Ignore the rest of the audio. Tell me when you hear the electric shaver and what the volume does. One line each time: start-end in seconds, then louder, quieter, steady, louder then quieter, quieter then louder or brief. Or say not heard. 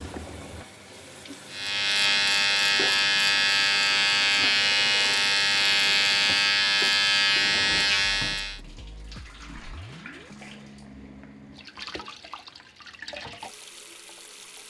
1.5-8.6 steady.